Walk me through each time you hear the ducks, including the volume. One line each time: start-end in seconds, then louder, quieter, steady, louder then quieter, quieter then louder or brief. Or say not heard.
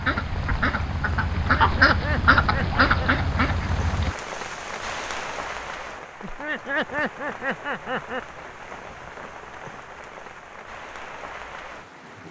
0.0-4.2 louder then quieter.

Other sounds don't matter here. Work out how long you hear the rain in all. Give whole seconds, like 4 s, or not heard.
12 s.